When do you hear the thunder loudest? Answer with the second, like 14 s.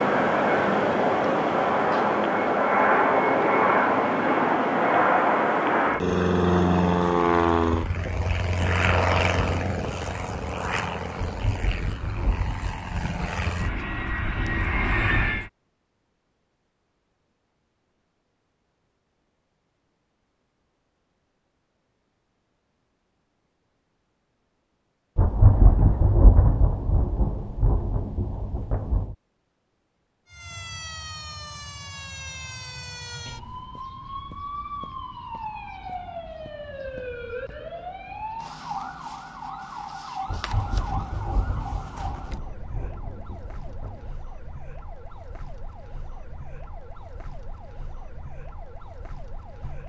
26 s.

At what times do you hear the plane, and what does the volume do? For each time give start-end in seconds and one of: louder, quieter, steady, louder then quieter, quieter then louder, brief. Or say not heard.
0.0-15.5 quieter.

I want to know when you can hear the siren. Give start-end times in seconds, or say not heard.
30.2-49.8.